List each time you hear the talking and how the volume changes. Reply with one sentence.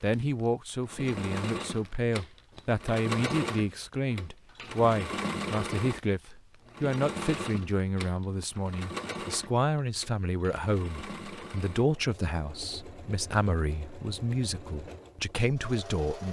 You can hear the talking from 0.0 to 16.2 s, at a steady volume.